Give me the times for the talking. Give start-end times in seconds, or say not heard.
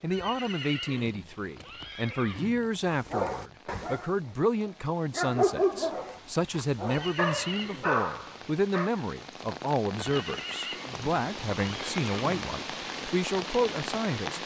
0.0-14.4.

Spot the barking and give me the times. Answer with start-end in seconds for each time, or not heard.
2.9-8.9.